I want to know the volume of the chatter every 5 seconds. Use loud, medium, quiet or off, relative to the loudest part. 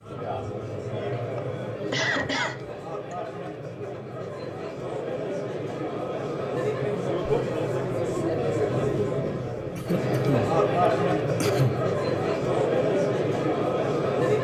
medium, loud, loud.